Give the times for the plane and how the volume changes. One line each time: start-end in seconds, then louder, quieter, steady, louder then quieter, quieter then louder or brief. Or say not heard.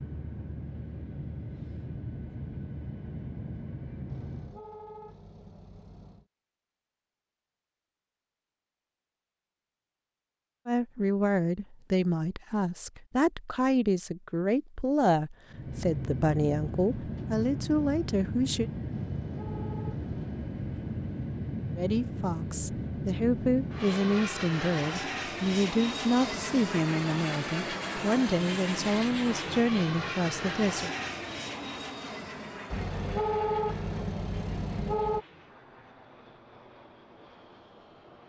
0.0-4.6 steady
15.5-38.2 quieter.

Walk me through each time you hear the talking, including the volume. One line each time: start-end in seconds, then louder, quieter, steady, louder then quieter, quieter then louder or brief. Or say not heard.
10.7-18.7 steady
21.8-30.9 steady.